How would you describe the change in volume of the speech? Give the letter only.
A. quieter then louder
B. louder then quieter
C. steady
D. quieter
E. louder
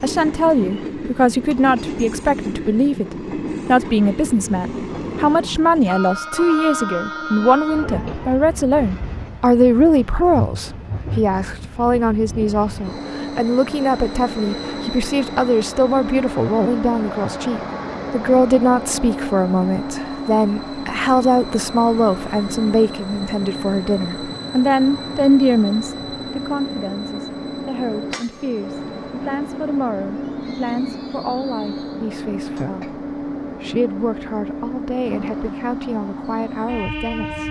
D.